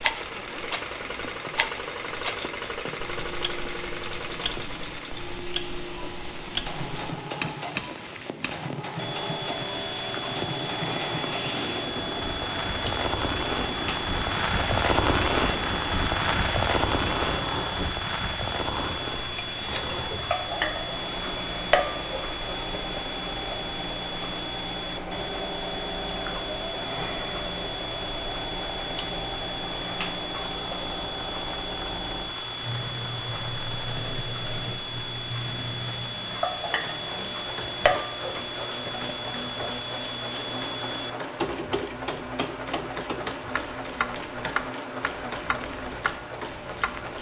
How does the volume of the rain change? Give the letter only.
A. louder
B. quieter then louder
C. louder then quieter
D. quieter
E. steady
C.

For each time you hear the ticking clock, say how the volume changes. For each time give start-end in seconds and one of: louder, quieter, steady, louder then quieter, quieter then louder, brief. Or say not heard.
0.0-47.1 steady.